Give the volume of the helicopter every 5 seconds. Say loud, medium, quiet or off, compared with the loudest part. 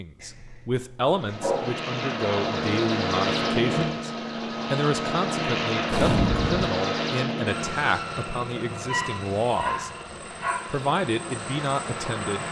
loud, loud, medium.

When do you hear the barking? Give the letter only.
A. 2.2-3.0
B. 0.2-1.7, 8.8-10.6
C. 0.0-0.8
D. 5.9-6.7
B.